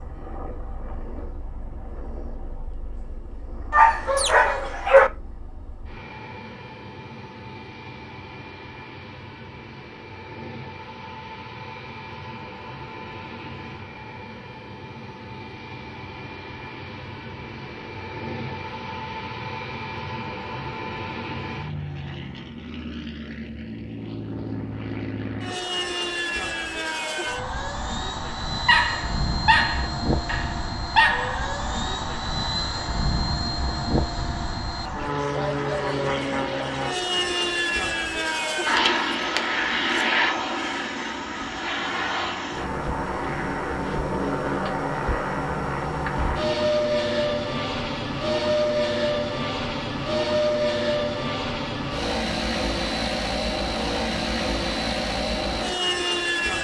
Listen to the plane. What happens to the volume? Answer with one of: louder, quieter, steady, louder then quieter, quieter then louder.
louder.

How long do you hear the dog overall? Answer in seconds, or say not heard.
4 s.